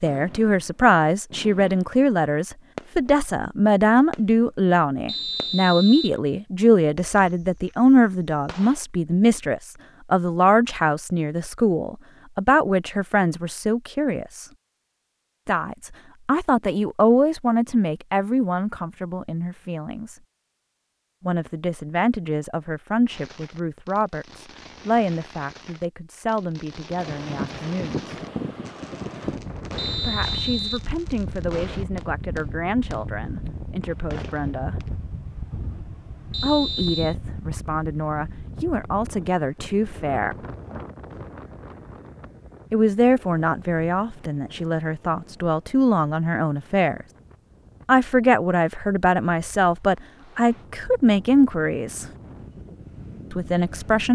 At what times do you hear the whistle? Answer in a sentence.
The whistle can be heard from 5.0 to 6.2 s, from 29.8 to 30.9 s and from 36.3 to 37.1 s.